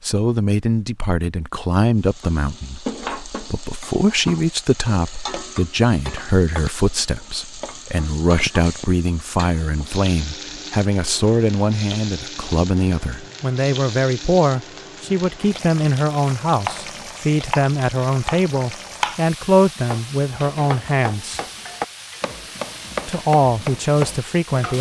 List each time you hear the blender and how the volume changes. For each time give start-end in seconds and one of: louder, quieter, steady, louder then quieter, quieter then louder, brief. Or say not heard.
not heard.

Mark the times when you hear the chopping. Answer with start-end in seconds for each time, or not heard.
16.4-24.7.